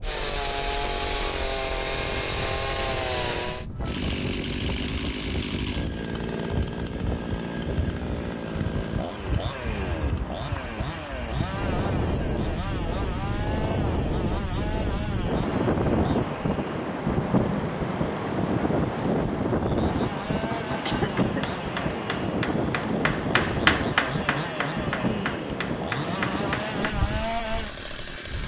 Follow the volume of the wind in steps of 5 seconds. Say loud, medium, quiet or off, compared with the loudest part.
quiet, medium, medium, loud, loud, medium.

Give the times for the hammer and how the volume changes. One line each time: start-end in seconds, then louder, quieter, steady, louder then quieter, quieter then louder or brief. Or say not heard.
20.5-26.8 louder then quieter.